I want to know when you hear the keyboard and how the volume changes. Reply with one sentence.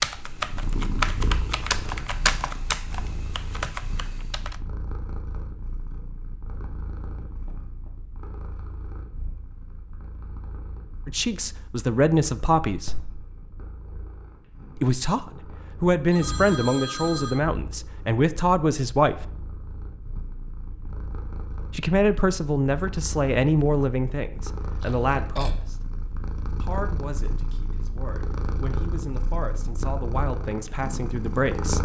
The keyboard can be heard from 0.0 to 4.5 s, getting quieter.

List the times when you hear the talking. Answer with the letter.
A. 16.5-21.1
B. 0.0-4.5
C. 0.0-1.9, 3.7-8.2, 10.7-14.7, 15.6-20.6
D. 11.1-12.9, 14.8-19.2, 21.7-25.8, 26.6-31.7
D.